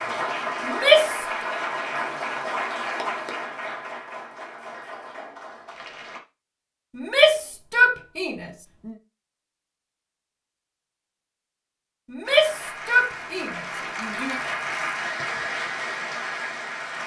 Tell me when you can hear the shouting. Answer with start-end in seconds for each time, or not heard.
0.6-1.5, 7.0-8.9, 12.1-14.4.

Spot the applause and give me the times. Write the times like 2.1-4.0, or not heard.
0.0-6.2, 12.2-17.0.